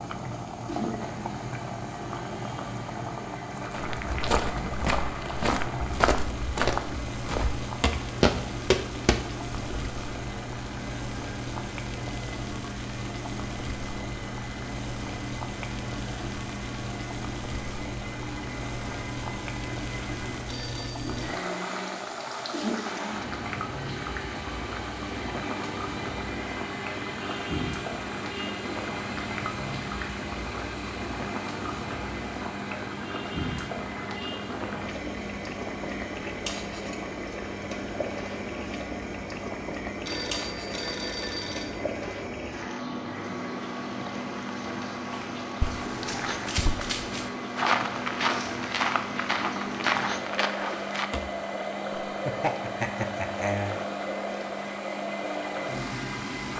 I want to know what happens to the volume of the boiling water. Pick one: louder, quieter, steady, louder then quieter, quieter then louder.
steady.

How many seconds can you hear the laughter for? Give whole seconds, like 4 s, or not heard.
2 s.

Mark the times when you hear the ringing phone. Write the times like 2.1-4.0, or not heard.
20.4-21.3, 40.0-41.7.